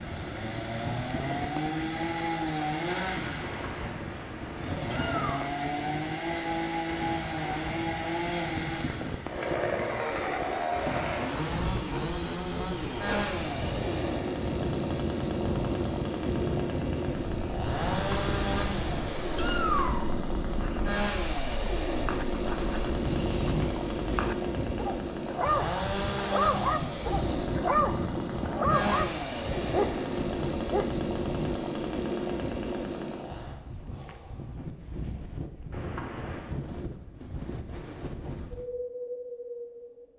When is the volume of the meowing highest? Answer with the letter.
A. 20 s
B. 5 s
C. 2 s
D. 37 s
A.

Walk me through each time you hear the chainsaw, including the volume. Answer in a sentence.
The chainsaw can be heard from 0.0 to 33.5 s, at a steady volume.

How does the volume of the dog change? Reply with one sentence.
The loudness of the dog goes up.